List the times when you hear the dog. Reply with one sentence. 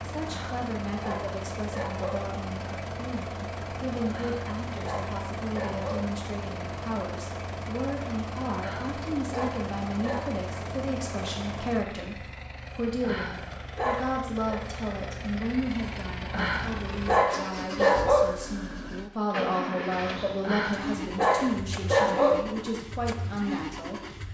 The dog can be heard from 0.2 to 2.3 s, from 4.0 to 6.1 s, from 8.6 to 10.3 s, from 13.0 to 14.6 s, from 16.3 to 18.3 s and from 20.4 to 22.4 s.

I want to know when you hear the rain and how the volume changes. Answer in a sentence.
The rain can't be heard in this clip.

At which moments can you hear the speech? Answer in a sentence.
The speech can be heard from 0.0 to 24.0 s.